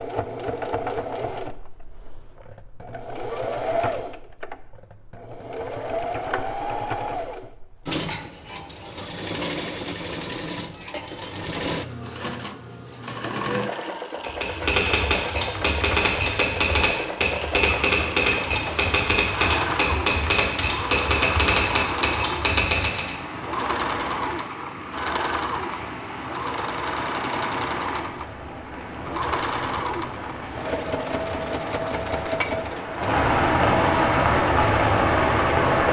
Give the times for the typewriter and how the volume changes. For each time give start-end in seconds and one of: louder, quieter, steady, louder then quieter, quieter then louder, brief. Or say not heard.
14.2-23.1 steady.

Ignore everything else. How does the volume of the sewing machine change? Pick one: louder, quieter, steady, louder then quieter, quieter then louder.
steady.